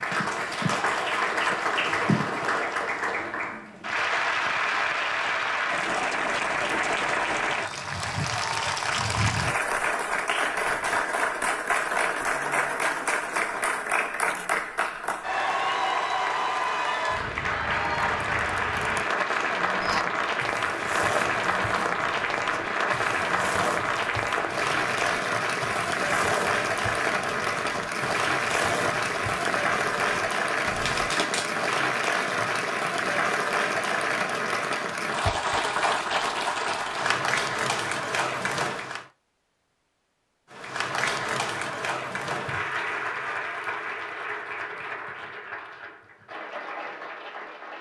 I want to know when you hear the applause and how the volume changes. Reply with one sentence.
The applause can be heard from 0.0 to 39.0 s, at a steady volume; and from 40.5 to 47.7 s, getting quieter.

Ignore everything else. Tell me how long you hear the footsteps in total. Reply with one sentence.
You can hear the footsteps for 11 seconds altogether.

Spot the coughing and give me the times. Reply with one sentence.
You can hear the coughing from 30.8 to 31.6 s.